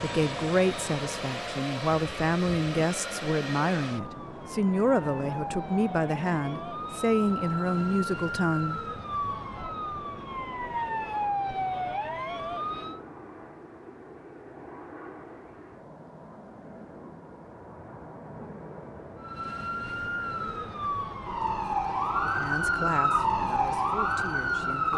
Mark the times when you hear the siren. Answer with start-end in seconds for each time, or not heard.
0.0-13.0, 19.1-24.9.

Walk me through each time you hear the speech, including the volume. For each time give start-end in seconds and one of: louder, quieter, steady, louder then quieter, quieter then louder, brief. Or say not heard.
0.0-8.8 steady
22.2-24.9 brief.